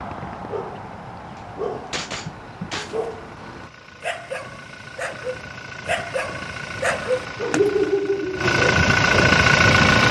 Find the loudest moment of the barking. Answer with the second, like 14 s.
8 s.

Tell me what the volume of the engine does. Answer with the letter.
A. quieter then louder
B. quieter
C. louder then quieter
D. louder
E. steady
D.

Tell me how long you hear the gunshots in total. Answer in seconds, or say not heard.
2 s.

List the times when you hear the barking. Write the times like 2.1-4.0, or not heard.
0.0-9.4.